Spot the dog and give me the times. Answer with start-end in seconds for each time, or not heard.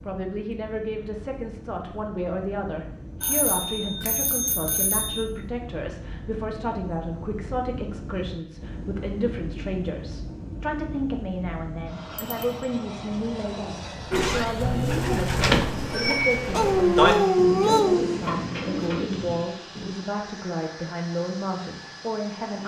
16.5-18.2.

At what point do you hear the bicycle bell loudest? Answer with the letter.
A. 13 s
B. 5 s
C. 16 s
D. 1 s
C.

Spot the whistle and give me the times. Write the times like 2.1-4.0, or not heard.
not heard.